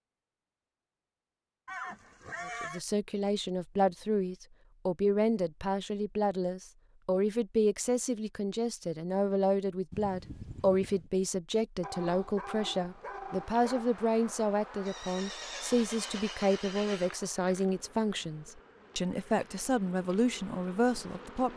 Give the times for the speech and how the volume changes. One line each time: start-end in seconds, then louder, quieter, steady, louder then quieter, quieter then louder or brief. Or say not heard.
2.5-21.5 steady.